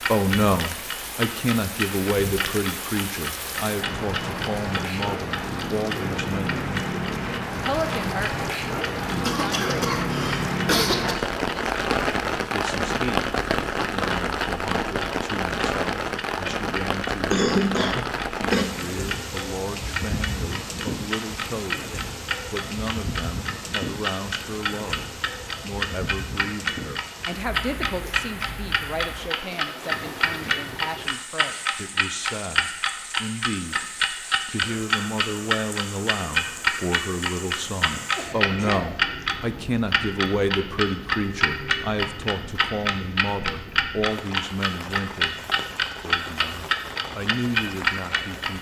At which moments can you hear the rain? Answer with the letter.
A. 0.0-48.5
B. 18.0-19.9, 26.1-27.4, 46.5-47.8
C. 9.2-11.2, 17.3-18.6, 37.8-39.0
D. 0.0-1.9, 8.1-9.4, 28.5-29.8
A.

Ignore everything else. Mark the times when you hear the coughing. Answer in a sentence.
The coughing can be heard from 9.2 to 11.2 s, from 17.3 to 18.6 s and from 37.8 to 39.0 s.